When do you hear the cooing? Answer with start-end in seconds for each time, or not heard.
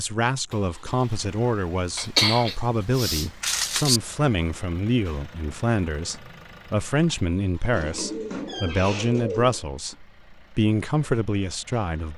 7.7-9.6.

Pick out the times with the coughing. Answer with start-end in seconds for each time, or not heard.
1.9-4.0.